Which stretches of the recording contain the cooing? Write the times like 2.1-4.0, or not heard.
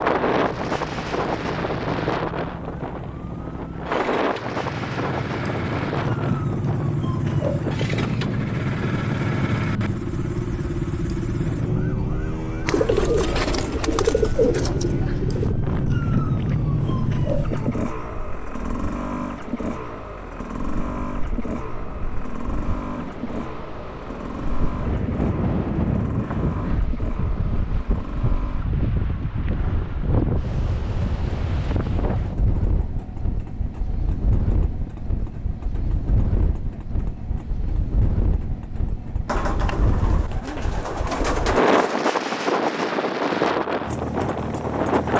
12.7-15.6, 39.2-42.0.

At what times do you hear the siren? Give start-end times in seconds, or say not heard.
0.0-17.9.